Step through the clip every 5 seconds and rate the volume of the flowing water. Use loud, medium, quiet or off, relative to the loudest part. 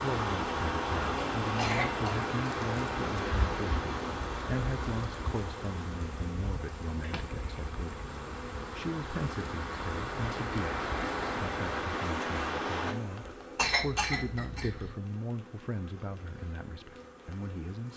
loud, medium, loud, off.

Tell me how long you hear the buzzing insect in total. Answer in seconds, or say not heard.
18 s.